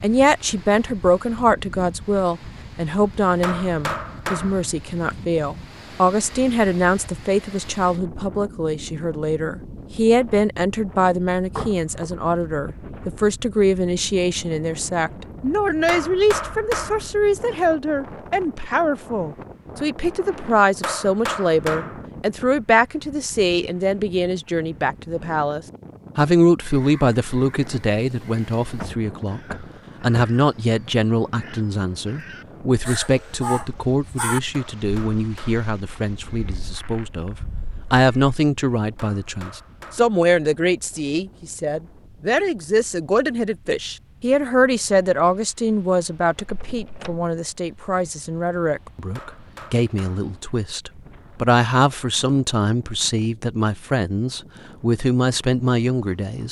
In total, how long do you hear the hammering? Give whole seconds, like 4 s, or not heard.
7 s.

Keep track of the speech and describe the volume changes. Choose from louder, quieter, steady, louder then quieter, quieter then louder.
steady.